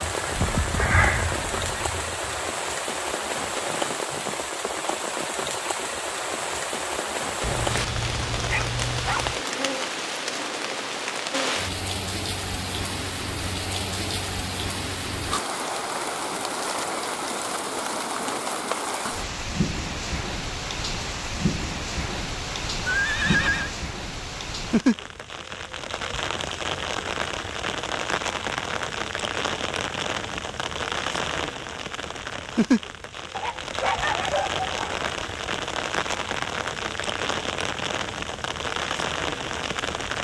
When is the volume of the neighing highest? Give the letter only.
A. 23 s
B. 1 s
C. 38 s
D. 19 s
A.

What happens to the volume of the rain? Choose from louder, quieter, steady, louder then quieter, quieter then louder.
steady.